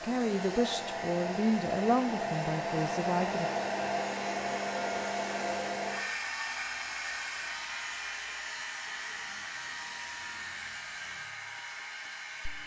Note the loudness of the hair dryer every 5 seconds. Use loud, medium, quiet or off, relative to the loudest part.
loud, loud, medium.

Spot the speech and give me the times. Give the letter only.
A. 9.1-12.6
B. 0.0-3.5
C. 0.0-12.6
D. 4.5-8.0
B.